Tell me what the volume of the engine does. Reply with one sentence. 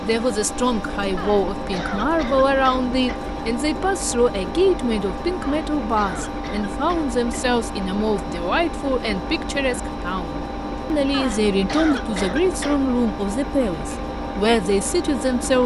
The loudness of the engine stays about the same.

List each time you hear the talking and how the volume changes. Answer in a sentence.
You can hear the talking from 0.0 to 15.6 s, at a steady volume.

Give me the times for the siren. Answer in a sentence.
The siren can't be heard in this clip.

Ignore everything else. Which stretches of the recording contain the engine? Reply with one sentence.
You can hear the engine from 0.0 to 15.6 s.